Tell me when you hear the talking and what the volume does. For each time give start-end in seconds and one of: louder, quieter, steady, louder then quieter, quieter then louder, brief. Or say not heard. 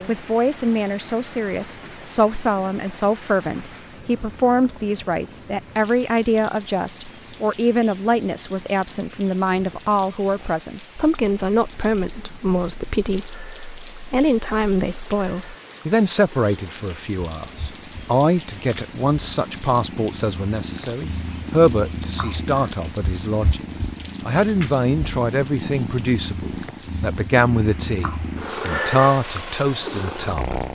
0.1-30.6 steady.